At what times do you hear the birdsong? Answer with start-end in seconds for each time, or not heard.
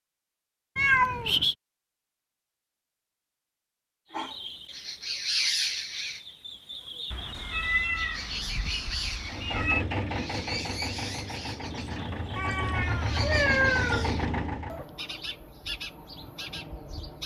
4.1-17.2.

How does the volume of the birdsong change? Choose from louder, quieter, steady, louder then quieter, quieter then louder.
quieter.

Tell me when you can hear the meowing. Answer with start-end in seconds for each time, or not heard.
0.8-1.6, 7.1-9.8, 12.3-14.2.